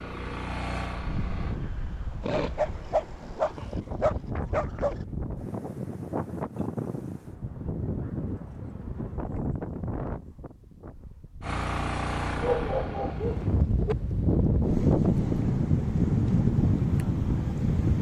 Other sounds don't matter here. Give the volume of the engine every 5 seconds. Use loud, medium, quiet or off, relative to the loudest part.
loud, off, loud, off.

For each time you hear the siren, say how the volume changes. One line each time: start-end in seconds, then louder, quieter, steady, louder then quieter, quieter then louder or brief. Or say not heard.
not heard.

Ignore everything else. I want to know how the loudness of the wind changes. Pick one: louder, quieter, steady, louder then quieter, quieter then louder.
louder.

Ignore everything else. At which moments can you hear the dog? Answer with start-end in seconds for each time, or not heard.
2.2-5.0, 12.3-13.9.